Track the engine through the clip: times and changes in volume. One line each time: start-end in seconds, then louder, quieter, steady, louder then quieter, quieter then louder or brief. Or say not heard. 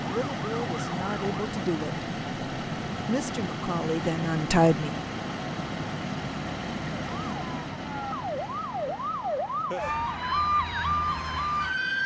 0.0-12.0 quieter.